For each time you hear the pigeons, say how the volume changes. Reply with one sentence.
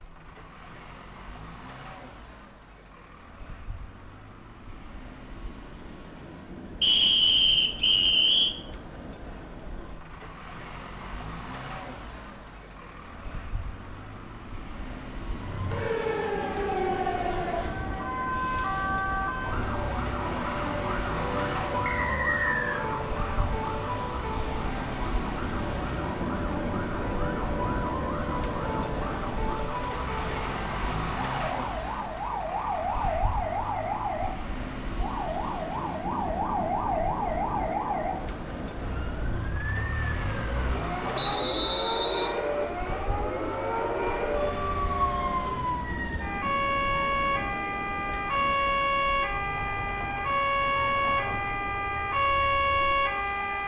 You can't hear the pigeons here.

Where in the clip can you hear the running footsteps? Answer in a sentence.
The running footsteps can't be heard in this clip.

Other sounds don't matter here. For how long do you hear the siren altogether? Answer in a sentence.
The siren can be heard for 38 seconds in total.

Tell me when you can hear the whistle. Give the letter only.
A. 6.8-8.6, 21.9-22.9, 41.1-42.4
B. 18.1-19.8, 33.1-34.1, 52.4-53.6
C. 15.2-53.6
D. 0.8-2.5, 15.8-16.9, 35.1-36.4
A.